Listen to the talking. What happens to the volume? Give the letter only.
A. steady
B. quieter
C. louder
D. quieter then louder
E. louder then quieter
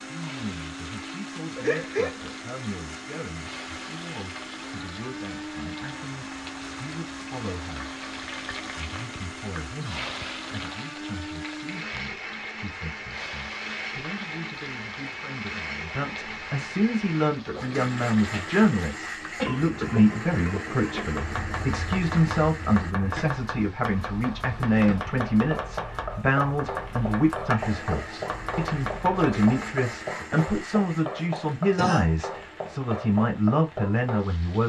C.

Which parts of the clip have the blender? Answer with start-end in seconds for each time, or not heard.
0.0-22.9, 27.6-34.6.